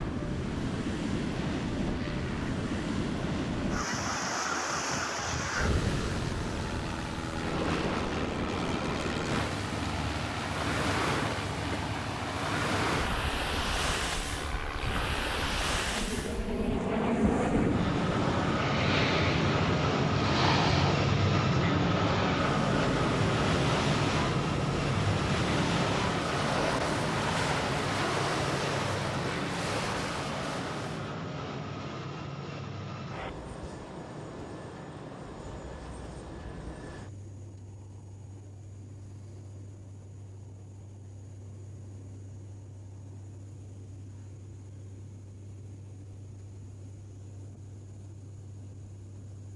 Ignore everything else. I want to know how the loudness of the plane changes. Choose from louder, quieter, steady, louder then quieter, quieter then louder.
louder then quieter.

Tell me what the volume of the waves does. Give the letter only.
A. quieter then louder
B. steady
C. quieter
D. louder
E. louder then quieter
B.